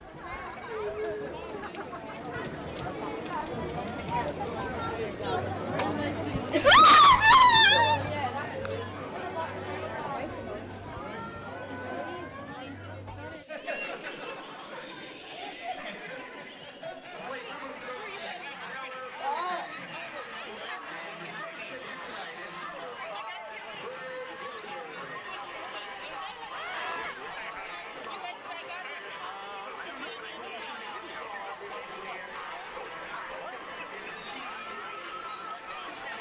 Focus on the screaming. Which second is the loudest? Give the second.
7 s.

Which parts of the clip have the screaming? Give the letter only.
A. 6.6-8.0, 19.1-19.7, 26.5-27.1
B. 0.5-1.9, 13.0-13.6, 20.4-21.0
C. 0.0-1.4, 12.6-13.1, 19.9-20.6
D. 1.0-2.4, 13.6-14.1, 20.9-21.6
A.